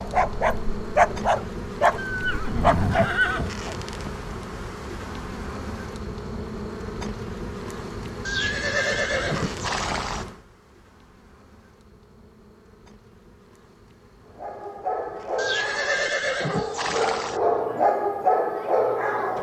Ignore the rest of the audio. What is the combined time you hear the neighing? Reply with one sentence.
You can hear the neighing for 6 seconds altogether.